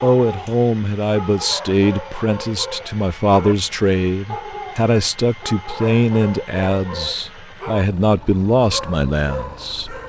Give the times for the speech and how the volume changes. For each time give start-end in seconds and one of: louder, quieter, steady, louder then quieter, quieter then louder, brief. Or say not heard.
0.0-10.0 steady.